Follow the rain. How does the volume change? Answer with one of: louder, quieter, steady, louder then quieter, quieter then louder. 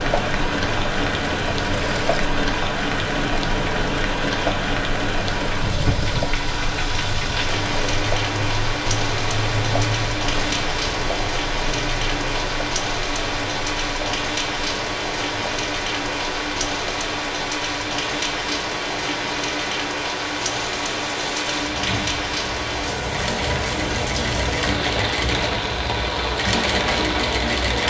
steady.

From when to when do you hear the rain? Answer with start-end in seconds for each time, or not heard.
0.0-27.8.